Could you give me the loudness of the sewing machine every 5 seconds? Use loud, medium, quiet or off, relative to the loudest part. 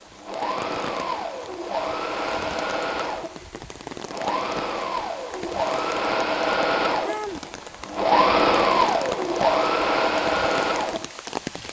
medium, loud, loud.